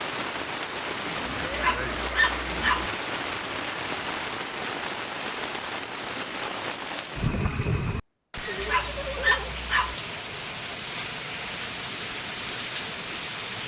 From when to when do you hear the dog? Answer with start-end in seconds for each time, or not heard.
1.5-2.9, 8.6-9.9.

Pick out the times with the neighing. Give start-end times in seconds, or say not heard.
1.1-2.9, 8.4-9.6.